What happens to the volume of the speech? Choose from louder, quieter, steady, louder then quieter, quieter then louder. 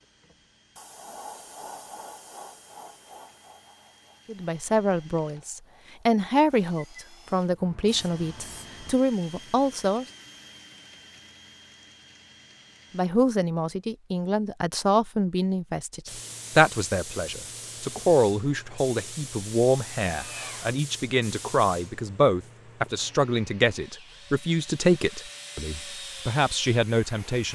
steady.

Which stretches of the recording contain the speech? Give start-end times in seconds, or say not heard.
4.2-10.1, 12.9-27.4.